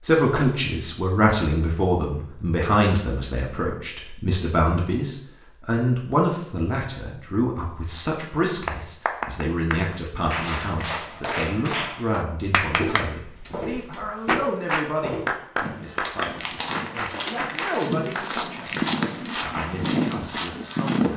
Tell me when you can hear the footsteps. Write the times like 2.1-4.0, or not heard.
12.6-21.1.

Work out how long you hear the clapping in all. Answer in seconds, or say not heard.
11 s.